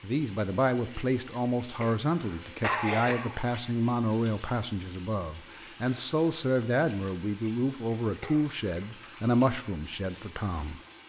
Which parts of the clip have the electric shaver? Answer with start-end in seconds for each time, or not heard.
not heard.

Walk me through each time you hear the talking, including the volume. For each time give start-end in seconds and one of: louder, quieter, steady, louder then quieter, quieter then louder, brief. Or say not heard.
0.0-10.8 steady.